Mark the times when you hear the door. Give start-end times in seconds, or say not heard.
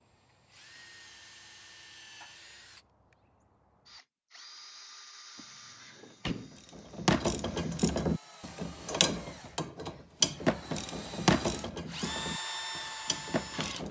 5.3-6.6.